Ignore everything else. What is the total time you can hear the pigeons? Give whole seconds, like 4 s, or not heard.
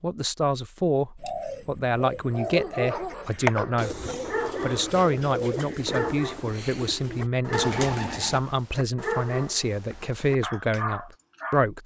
7 s.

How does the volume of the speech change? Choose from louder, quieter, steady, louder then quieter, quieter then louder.
steady.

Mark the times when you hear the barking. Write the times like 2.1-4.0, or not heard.
2.3-11.7.